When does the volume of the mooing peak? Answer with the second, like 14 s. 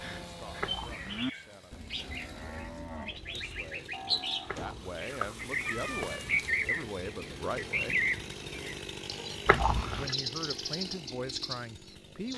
1 s.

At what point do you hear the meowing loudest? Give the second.
10 s.